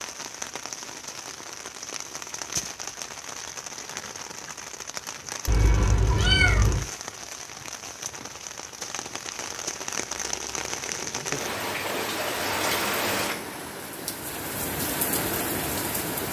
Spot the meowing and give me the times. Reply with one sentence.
You can hear the meowing from 5.5 to 6.8 s.